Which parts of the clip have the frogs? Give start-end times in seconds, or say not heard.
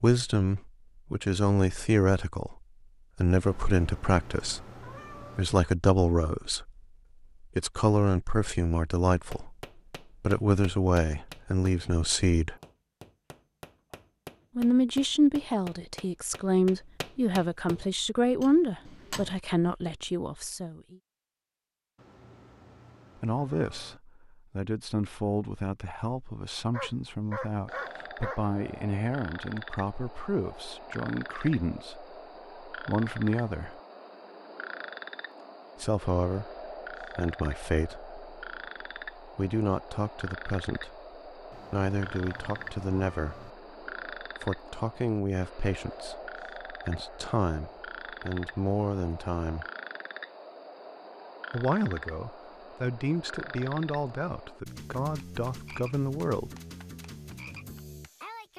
27.6-58.5.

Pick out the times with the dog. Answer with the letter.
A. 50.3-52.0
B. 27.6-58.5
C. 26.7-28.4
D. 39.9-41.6
C.